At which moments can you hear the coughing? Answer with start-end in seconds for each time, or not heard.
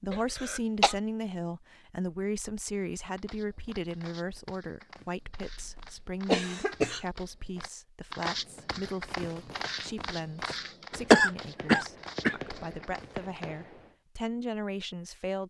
0.1-0.9, 5.4-7.0, 11.1-12.3.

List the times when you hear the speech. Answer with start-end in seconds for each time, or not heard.
0.0-15.4.